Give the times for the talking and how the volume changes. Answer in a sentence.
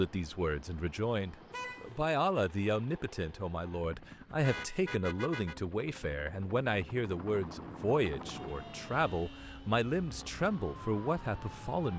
The talking can be heard from 0.0 to 11.9 s, at a steady volume.